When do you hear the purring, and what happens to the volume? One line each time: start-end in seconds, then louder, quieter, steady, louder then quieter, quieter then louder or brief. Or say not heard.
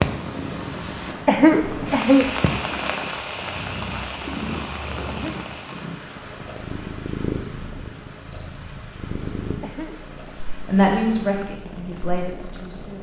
0.0-12.9 quieter.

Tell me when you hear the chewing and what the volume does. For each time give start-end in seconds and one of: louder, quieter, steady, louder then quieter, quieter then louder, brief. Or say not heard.
not heard.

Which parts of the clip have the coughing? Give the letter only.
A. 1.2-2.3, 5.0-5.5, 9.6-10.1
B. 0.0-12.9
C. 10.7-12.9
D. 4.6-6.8
A.